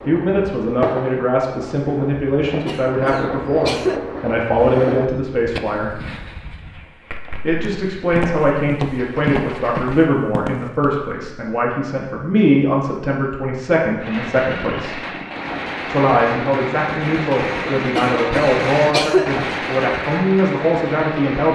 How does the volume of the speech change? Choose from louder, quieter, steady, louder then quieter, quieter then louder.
steady.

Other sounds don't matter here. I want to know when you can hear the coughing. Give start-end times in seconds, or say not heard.
2.6-4.0, 17.9-19.4.